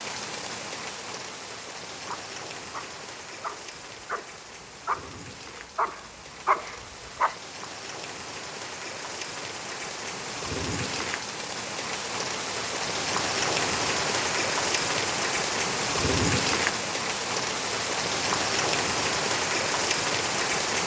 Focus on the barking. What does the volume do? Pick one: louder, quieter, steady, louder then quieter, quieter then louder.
louder.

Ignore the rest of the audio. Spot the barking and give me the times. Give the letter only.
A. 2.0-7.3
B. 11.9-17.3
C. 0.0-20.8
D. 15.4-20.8
A.